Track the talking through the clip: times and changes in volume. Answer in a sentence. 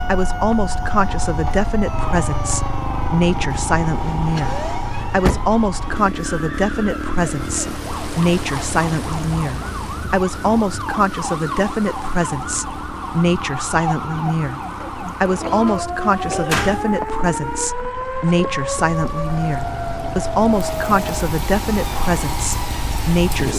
The talking can be heard from 0.1 to 23.5 s, at a steady volume.